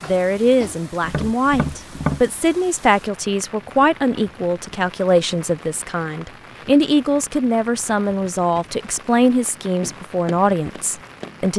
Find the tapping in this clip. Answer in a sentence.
You can hear the tapping from 0.0 to 2.2 s and from 9.8 to 11.4 s.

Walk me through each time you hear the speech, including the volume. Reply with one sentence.
You can hear the speech from 0.0 to 11.5 s, at a steady volume.